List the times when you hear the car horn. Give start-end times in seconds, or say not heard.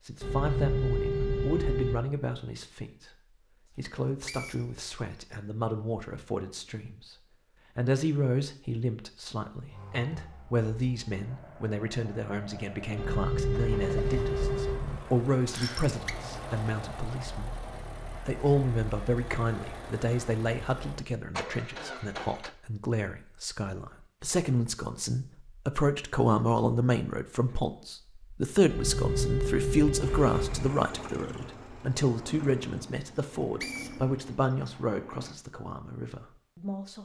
0.2-2.0, 12.9-15.0, 28.6-30.7.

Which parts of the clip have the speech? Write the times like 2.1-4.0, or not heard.
0.0-3.1, 3.8-7.2, 7.8-36.9.